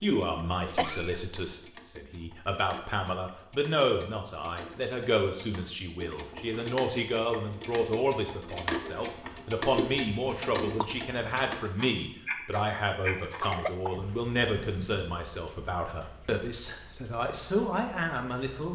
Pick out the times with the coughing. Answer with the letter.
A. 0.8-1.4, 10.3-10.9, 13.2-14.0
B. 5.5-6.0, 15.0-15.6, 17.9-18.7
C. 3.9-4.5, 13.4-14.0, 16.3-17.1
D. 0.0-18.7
A.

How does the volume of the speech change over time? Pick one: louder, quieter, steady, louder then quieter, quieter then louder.
steady.